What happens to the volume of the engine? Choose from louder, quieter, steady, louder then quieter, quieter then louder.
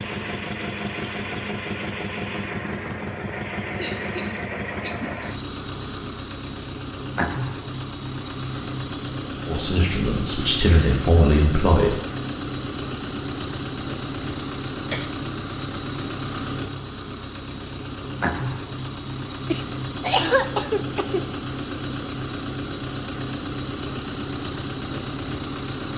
steady.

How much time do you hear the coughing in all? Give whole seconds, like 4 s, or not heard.
4 s.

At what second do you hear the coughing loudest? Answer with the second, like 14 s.
20 s.